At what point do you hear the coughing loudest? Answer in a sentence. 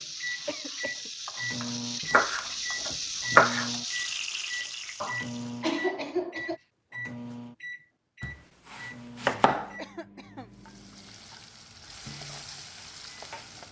The loudest moment of the coughing is at 6 seconds.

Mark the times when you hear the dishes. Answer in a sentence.
You can't hear the dishes here.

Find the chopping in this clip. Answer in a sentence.
The chopping can be heard from 2.1 to 3.7 s and from 8.2 to 9.8 s.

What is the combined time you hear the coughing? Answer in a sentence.
The coughing can be heard for 3 seconds in total.